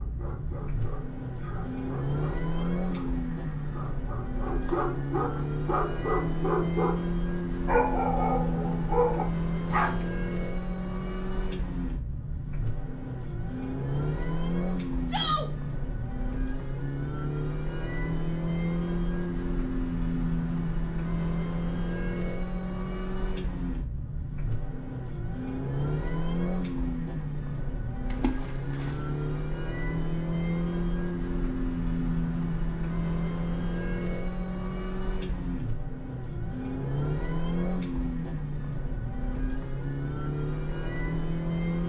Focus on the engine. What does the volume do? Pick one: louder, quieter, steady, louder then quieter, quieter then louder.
steady.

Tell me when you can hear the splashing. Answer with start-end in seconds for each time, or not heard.
28.1-29.4.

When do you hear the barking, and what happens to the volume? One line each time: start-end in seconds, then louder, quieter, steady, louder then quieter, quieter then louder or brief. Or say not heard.
0.0-7.0 louder
7.7-10.1 brief.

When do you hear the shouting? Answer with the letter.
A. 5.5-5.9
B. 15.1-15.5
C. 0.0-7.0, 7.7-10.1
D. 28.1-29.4
B.